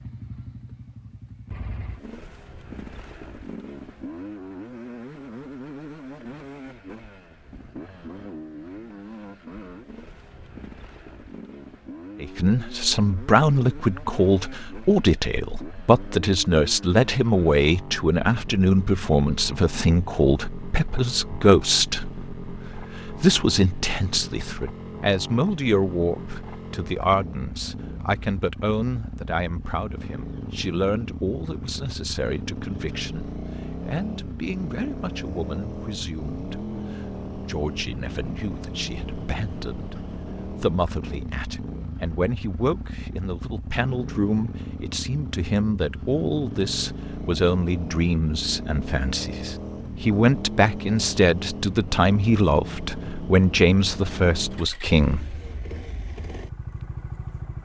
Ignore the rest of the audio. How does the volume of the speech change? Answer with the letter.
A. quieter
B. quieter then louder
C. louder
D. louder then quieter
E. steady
B.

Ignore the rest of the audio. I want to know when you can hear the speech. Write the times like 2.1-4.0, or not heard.
12.2-55.4.